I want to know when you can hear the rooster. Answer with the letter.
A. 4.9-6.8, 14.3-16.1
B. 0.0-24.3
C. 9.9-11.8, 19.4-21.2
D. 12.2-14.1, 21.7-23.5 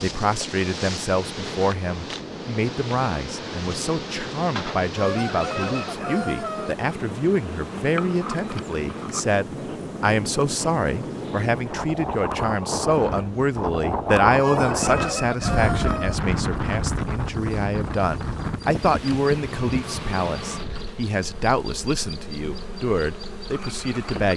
A.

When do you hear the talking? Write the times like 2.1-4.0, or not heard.
0.0-24.3.